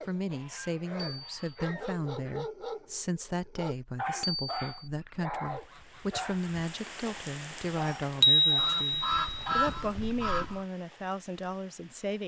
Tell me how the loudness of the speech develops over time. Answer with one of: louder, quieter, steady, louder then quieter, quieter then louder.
steady.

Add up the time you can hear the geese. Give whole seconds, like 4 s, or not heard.
6 s.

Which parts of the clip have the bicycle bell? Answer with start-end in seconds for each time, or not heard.
0.9-1.6, 4.2-4.9, 8.2-9.7.